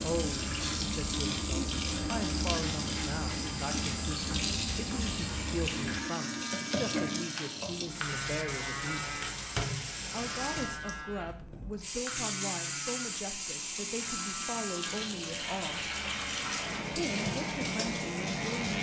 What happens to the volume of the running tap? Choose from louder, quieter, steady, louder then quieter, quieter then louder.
steady.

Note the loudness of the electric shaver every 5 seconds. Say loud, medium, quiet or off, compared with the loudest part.
loud, loud, medium, loud.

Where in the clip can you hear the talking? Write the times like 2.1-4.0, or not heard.
0.0-9.2, 10.1-15.9, 16.9-18.7.